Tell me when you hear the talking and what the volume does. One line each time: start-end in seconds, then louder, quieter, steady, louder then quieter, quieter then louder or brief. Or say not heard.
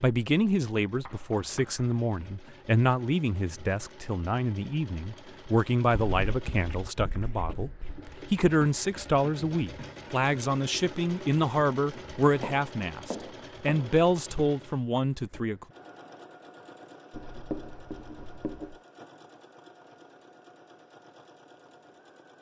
0.0-15.7 steady.